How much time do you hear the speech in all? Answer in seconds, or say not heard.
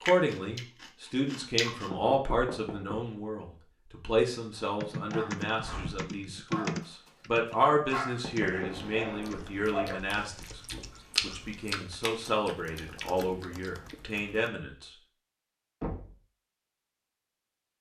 15 s.